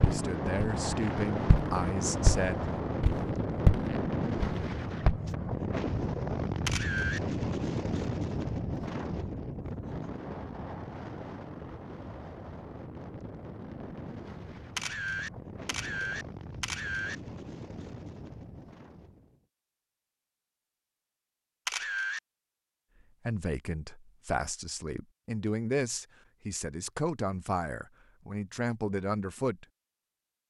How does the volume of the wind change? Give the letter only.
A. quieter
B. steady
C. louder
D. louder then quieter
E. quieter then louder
A.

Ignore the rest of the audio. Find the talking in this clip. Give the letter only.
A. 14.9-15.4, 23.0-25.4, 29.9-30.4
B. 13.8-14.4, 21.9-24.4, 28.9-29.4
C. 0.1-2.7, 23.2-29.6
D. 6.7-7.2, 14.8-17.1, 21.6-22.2
C.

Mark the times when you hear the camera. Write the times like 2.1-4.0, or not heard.
6.7-7.2, 14.8-17.1, 21.6-22.2.